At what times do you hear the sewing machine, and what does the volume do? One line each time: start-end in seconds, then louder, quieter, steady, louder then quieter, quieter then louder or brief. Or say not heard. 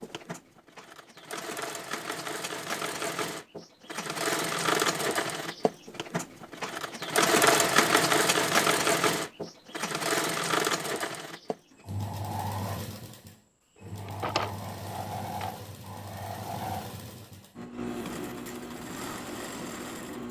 0.0-20.2 louder then quieter.